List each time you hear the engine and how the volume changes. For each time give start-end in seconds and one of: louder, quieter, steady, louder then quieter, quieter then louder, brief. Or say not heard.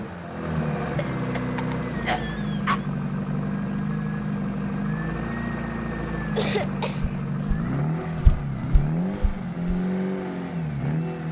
0.0-11.2 steady.